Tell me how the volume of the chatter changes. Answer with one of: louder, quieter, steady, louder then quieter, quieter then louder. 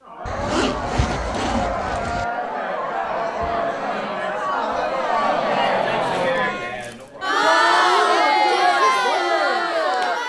louder.